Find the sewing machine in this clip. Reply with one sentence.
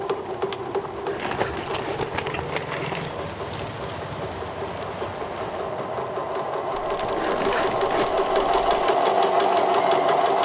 You can hear the sewing machine from 0.0 to 10.4 s.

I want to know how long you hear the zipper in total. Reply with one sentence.
You can hear the zipper for 2 seconds altogether.